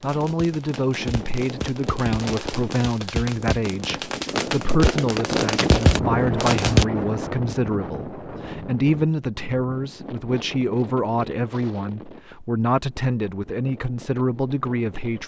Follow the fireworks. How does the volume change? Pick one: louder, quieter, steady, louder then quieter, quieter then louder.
louder.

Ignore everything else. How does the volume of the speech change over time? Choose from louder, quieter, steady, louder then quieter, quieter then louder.
steady.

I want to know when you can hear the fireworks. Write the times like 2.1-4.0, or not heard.
0.0-6.8.